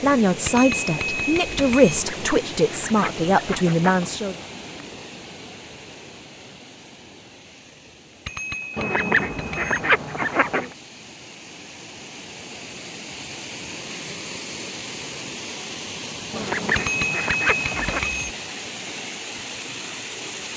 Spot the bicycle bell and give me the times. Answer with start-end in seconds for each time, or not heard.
0.5-2.0, 8.2-9.8, 16.8-18.4.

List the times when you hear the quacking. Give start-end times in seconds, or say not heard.
1.9-4.1, 8.8-10.7, 16.3-18.1.